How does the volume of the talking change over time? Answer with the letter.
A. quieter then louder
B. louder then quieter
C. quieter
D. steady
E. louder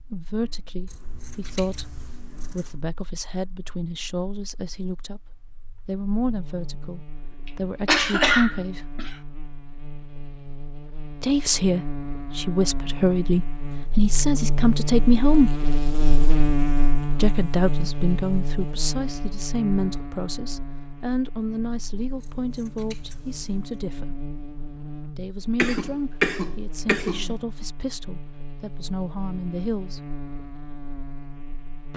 B.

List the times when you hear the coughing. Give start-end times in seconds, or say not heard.
7.5-9.2, 25.6-27.4.